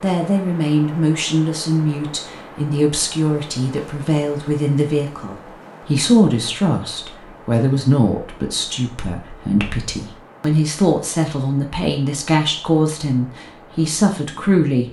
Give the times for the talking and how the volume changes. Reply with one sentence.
You can hear the talking from 0.0 to 14.8 s, at a steady volume.